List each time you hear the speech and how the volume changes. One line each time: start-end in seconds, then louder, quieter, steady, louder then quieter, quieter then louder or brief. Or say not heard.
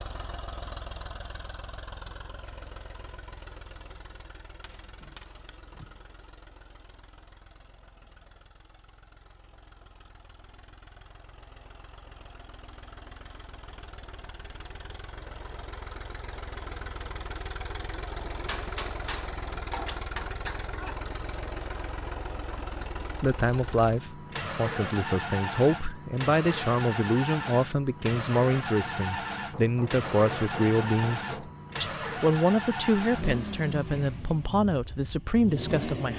23.2-36.1 steady.